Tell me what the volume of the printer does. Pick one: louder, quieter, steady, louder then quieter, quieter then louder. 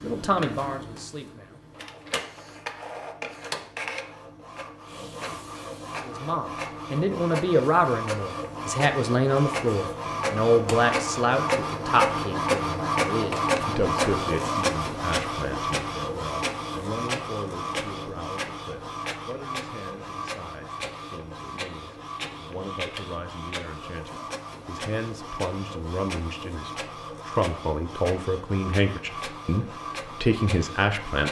louder then quieter.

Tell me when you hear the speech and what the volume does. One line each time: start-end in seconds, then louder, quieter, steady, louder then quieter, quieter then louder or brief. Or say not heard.
0.0-1.6 brief
6.0-31.2 quieter then louder.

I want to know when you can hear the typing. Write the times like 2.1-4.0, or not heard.
not heard.